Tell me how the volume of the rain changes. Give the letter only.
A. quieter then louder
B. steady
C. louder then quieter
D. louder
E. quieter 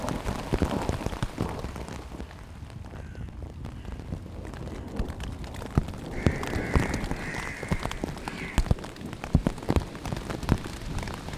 A.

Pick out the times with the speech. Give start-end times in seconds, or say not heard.
not heard.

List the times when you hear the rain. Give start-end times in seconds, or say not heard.
0.0-11.3.